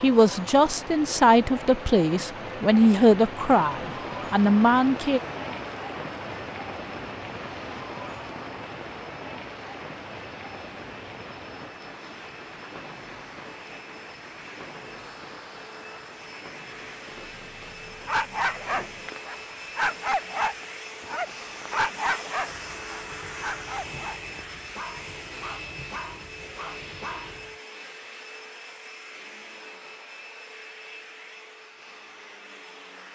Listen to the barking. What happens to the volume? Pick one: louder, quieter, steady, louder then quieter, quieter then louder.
quieter.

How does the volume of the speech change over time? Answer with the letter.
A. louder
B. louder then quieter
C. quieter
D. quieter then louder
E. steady
E.